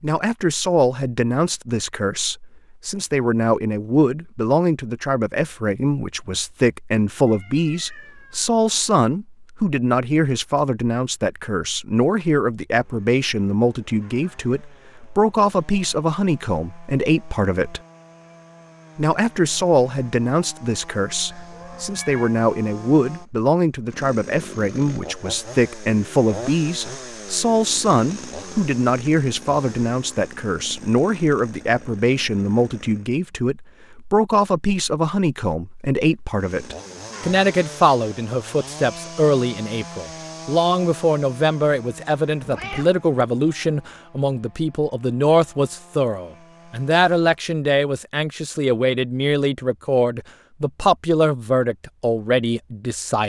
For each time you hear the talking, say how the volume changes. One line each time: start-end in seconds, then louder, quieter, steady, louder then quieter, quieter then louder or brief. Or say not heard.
0.0-17.8 steady
18.9-53.2 steady.